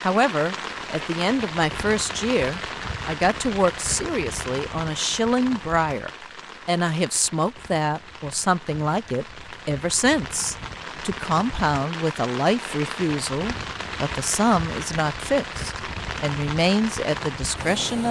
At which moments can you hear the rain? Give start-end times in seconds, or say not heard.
0.0-18.0.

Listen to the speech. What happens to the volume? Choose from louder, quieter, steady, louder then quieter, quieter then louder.
steady.